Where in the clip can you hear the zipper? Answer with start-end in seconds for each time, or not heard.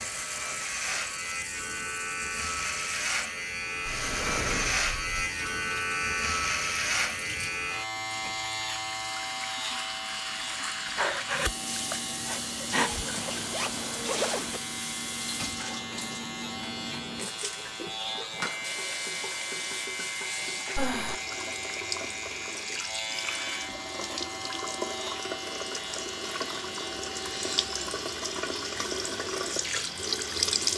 12.8-14.6.